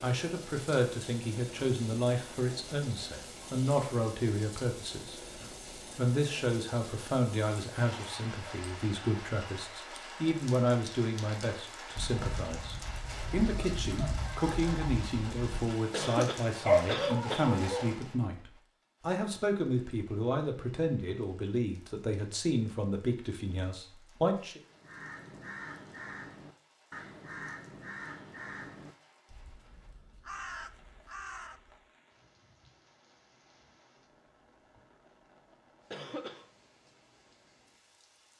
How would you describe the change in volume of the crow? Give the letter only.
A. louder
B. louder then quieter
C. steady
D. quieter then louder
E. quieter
D.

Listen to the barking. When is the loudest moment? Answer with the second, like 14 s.
17 s.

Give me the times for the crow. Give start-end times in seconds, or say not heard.
24.6-31.9.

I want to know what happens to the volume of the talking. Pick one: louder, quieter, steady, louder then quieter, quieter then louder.
steady.